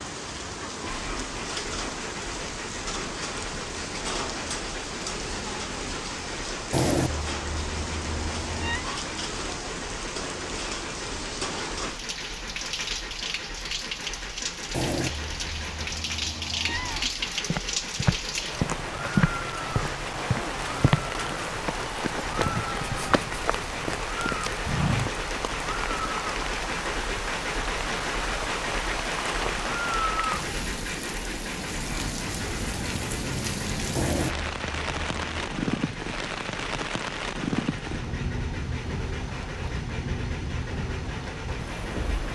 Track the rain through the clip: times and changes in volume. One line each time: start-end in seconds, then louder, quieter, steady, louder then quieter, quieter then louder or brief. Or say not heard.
0.0-42.3 steady.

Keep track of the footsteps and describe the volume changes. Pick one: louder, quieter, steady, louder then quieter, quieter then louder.
quieter.